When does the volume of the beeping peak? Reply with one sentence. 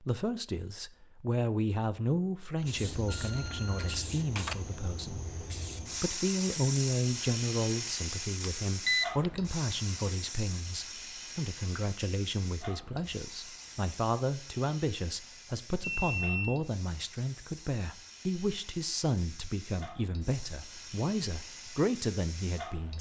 The loudest moment of the beeping is at 9 seconds.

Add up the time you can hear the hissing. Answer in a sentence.
You can hear the hissing for 20 seconds altogether.